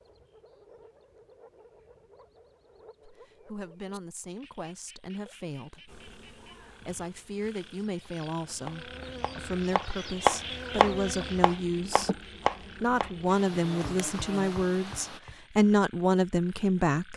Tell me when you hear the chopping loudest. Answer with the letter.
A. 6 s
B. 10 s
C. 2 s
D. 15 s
B.